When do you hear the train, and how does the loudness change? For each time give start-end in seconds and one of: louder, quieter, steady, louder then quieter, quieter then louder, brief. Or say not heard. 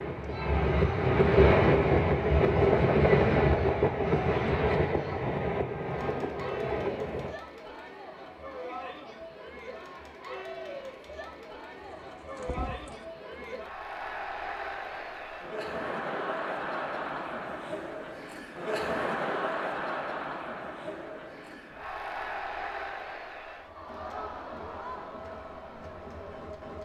0.0-7.3 quieter.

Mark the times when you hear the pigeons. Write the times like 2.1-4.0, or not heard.
11.8-13.1.